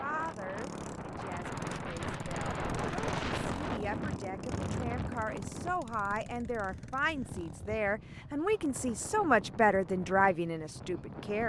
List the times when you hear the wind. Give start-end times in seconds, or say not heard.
0.0-11.4.